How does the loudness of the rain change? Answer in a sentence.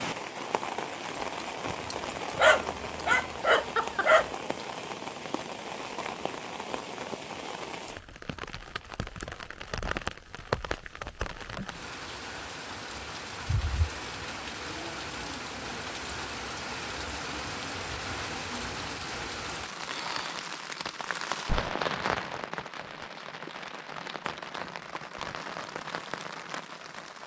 The loudness of the rain stays about the same.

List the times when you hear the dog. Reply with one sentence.
You can hear the dog from 2.4 to 4.3 s.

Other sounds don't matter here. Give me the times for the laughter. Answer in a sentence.
You can hear the laughter from 3.4 to 4.2 s.